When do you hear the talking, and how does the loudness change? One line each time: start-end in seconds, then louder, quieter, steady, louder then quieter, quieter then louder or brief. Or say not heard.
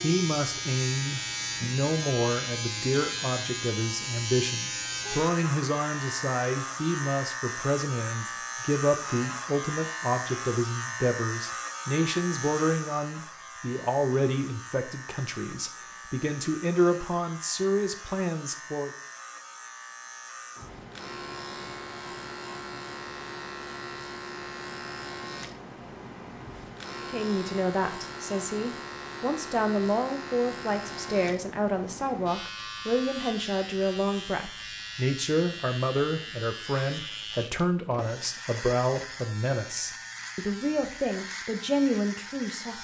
0.0-18.9 steady
27.0-42.7 steady.